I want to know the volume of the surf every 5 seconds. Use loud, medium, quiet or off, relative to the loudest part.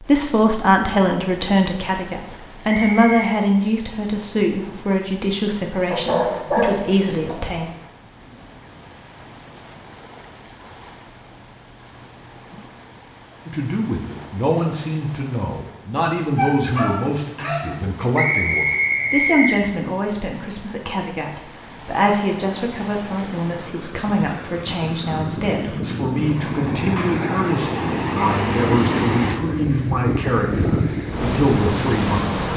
quiet, quiet, quiet, quiet, quiet, loud, loud.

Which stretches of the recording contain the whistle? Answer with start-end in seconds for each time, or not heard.
2.6-3.3, 18.1-19.6.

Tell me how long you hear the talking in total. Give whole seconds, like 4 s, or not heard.
27 s.